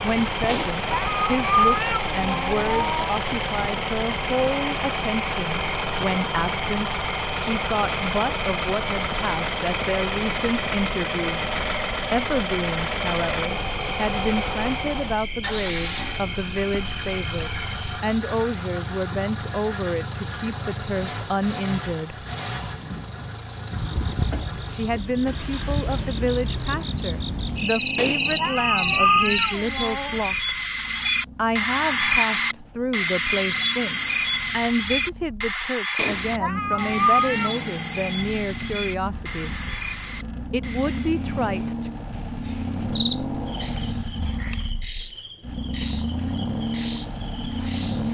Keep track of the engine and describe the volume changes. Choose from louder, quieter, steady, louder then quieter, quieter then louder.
quieter then louder.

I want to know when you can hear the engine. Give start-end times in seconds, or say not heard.
0.0-48.0.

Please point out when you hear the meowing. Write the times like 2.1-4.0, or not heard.
0.5-3.1, 27.9-30.2, 36.0-37.5.